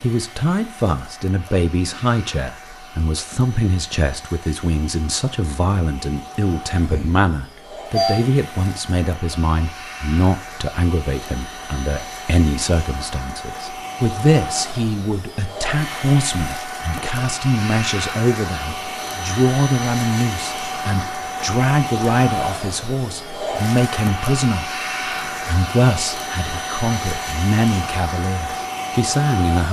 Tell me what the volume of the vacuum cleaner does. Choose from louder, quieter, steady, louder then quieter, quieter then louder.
louder.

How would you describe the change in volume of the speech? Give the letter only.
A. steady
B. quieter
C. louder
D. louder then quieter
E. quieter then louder
A.